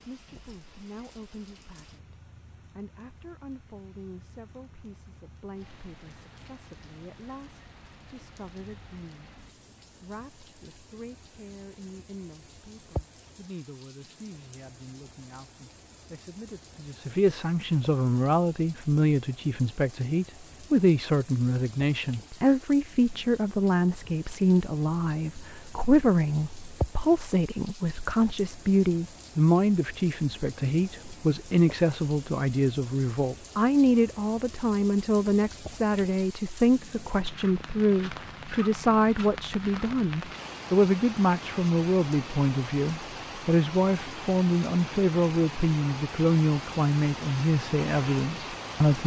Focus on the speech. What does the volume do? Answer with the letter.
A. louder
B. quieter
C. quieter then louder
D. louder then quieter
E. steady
A.